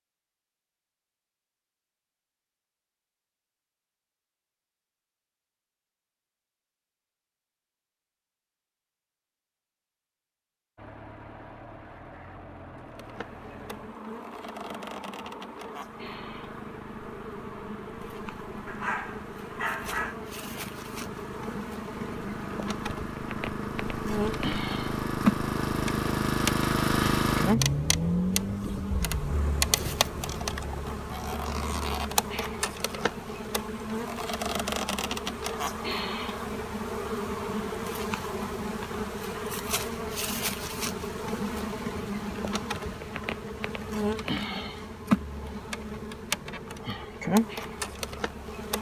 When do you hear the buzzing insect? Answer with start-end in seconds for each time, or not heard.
12.8-48.7.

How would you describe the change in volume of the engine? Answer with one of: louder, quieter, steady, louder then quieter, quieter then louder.
louder then quieter.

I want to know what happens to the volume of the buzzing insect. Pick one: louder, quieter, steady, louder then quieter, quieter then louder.
louder.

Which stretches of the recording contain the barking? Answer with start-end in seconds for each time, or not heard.
18.6-20.1.